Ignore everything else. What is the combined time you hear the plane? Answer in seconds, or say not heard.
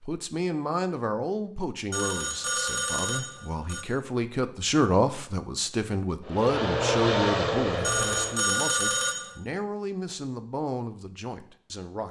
2 s.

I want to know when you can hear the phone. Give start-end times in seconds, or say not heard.
1.9-3.9, 7.8-9.3.